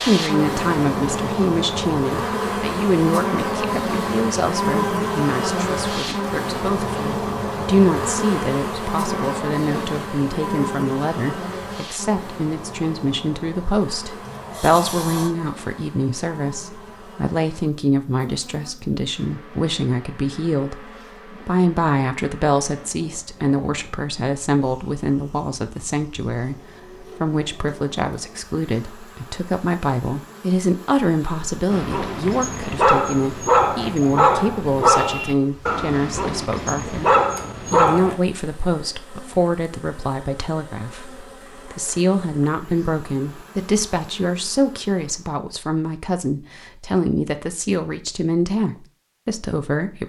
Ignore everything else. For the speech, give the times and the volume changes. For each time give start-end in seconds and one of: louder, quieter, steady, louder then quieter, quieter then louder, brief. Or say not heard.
0.1-50.0 steady.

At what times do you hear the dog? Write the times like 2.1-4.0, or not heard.
31.7-38.1.